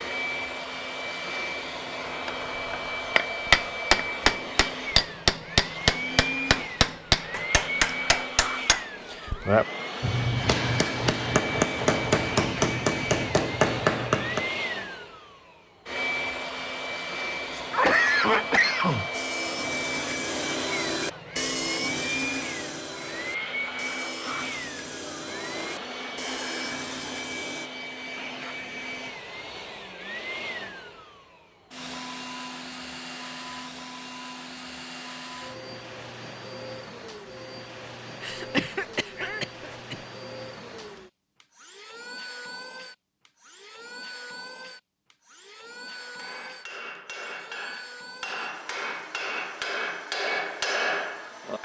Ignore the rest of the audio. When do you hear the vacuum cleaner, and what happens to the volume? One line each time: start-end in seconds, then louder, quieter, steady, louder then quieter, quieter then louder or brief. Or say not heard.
0.0-51.5 quieter.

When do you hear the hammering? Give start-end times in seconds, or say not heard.
2.2-14.5, 45.9-51.5.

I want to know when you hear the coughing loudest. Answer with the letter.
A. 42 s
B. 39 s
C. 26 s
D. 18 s
D.